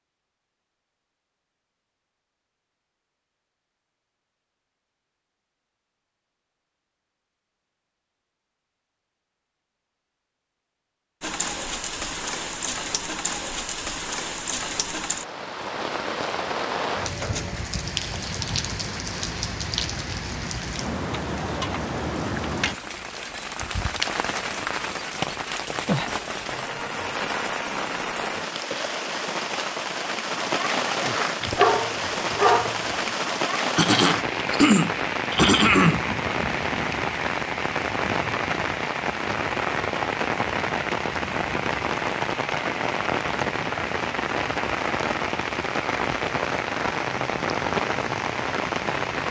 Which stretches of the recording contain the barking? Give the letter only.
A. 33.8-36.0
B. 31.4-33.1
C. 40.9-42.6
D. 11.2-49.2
B.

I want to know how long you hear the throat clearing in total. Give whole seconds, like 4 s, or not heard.
2 s.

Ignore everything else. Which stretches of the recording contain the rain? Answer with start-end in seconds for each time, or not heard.
11.2-49.2.